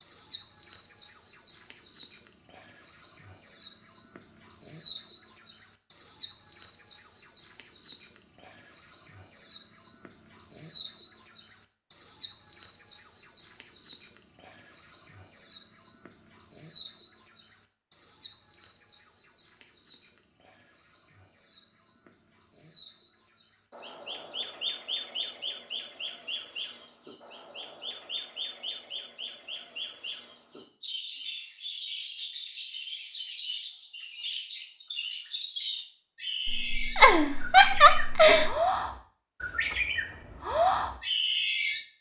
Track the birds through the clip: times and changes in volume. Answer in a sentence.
The birds can be heard from 0.0 to 41.8 s, getting quieter then louder.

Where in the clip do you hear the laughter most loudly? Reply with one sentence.
The loudest moment of the laughter is at 38 seconds.